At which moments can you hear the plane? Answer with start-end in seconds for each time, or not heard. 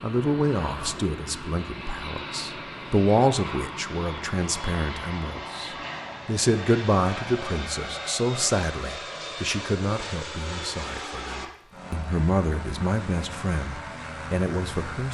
0.0-15.0.